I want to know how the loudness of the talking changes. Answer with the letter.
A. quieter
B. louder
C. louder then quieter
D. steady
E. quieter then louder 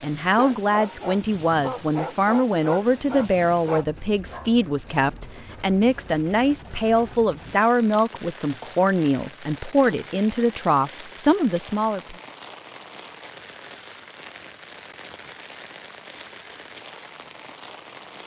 D.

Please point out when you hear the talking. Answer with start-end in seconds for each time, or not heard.
0.0-12.2.